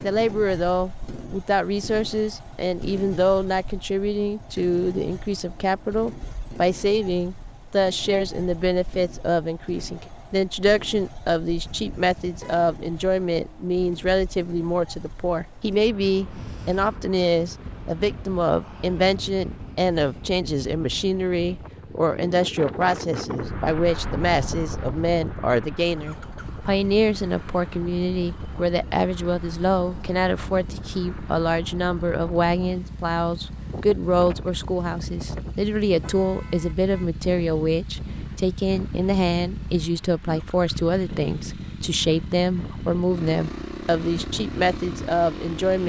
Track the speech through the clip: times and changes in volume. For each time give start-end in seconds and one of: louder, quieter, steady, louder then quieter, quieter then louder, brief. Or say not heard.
0.0-45.8 steady.